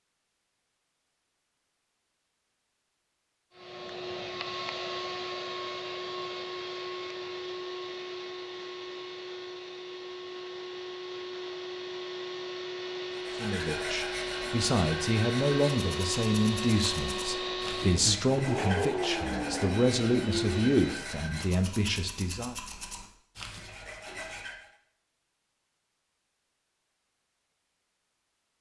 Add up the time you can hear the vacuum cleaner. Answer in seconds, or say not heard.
18 s.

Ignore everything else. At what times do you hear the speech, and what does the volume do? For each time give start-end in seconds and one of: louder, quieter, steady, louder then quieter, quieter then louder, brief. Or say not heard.
13.3-22.6 steady.